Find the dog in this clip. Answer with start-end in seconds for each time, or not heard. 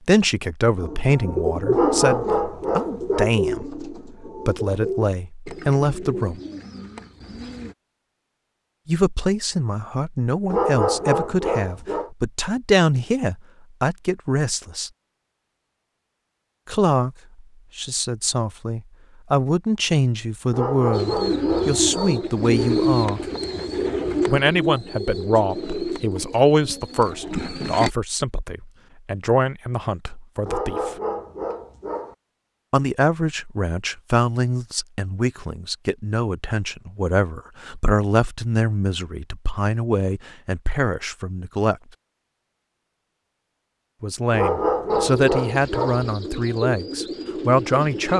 1.7-3.2, 10.5-12.1, 20.5-22.2, 30.4-32.1, 44.3-46.0.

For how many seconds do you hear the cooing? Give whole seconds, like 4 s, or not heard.
17 s.